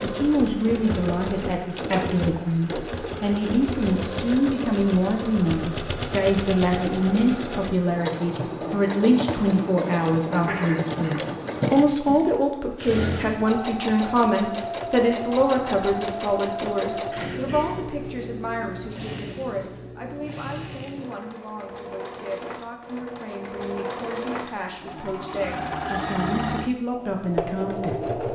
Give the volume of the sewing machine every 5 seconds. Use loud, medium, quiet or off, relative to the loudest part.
loud, loud, loud, loud, medium, loud.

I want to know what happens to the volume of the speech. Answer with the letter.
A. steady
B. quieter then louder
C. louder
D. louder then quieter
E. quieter
E.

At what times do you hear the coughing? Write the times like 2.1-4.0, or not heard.
10.4-11.7, 17.1-18.1.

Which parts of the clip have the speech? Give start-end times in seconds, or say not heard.
0.0-28.1.